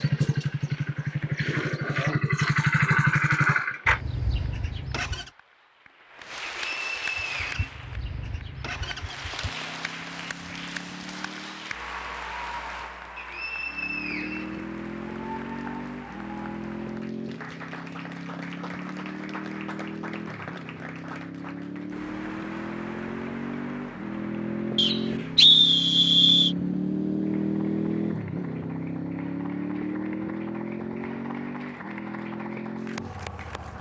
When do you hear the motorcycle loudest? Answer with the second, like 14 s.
3 s.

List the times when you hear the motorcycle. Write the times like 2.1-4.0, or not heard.
0.0-5.3, 7.0-11.8, 13.6-33.7.